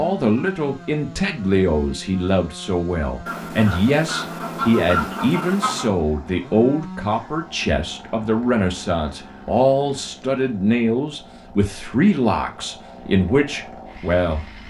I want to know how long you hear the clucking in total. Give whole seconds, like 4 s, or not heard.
3 s.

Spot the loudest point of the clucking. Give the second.
5 s.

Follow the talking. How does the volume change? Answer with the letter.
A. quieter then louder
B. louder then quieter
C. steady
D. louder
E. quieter
C.